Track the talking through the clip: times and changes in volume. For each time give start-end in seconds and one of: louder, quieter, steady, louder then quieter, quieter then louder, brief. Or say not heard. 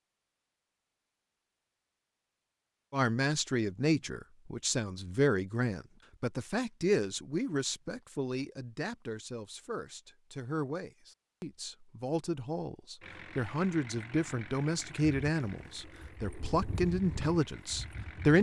2.9-18.3 quieter then louder.